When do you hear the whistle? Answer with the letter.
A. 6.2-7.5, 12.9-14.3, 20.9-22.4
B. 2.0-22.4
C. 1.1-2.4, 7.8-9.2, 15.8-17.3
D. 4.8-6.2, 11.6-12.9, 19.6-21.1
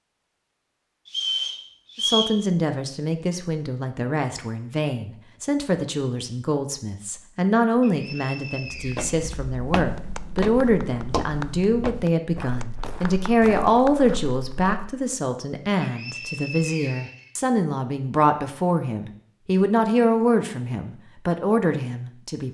C.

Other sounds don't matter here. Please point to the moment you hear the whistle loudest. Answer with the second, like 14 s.
2 s.